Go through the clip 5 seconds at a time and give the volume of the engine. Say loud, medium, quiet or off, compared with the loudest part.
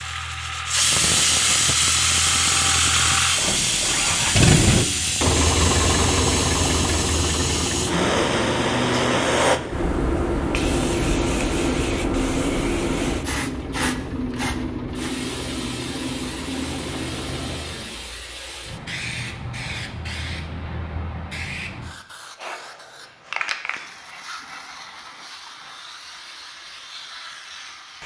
loud, loud, medium, medium, off, off.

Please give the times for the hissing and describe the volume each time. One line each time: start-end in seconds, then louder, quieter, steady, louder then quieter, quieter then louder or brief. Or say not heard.
0.0-28.0 quieter.